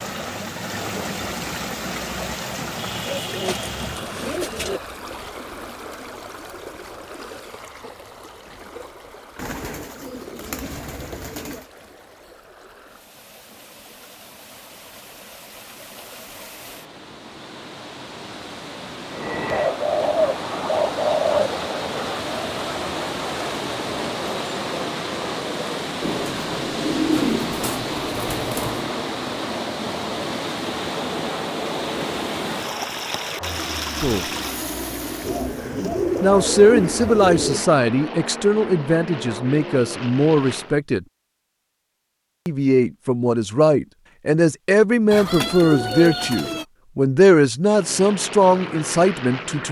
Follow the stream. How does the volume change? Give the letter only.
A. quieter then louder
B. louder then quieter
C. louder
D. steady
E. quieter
A.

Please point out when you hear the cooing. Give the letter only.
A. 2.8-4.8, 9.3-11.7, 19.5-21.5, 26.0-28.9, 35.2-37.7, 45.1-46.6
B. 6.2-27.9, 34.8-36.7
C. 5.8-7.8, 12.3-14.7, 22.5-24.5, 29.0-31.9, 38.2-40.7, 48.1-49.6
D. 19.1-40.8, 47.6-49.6
A.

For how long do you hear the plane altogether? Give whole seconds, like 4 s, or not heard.
24 s.